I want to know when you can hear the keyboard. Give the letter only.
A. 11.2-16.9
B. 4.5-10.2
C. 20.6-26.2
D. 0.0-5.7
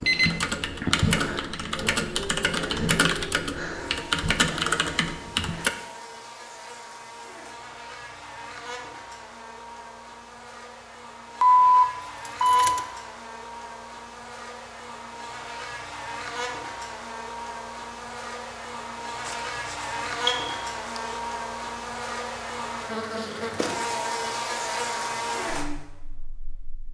D.